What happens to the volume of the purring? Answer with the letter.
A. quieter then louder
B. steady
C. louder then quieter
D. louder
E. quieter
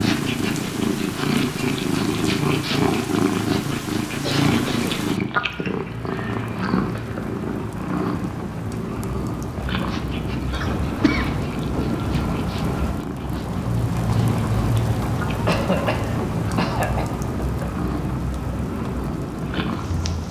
E.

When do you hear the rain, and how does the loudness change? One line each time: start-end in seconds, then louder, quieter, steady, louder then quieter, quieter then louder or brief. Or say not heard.
0.0-20.2 louder.